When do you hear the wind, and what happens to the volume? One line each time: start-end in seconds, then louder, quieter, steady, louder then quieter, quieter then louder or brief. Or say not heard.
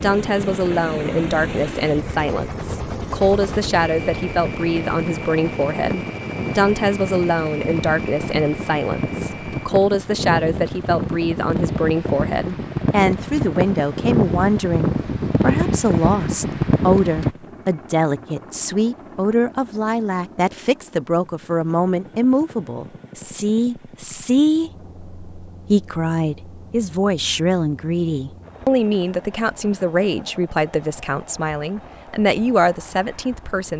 0.0-17.4 louder.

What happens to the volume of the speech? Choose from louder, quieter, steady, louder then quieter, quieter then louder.
steady.